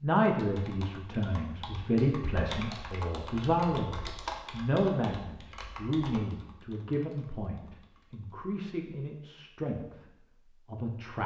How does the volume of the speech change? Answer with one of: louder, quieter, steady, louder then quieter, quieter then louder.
quieter.